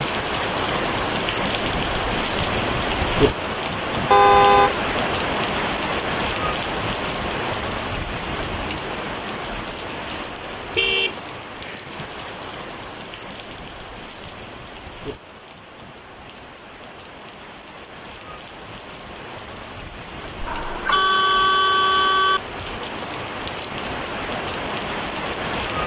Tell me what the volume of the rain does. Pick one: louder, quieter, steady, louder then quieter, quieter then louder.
quieter then louder.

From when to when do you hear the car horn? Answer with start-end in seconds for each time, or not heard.
4.1-4.8, 10.8-12.1, 20.4-22.4.